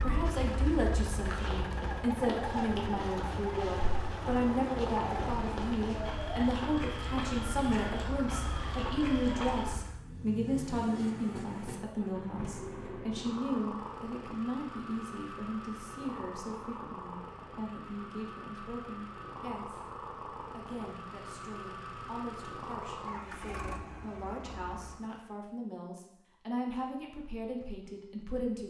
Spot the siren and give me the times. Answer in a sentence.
You can hear the siren from 0.0 to 9.8 s.